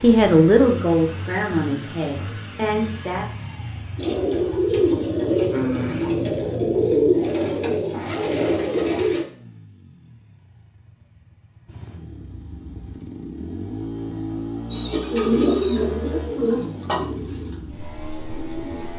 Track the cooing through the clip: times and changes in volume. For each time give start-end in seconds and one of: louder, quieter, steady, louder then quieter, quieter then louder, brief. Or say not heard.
4.0-9.2 steady
14.7-18.9 quieter.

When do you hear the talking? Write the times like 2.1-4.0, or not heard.
0.0-3.2.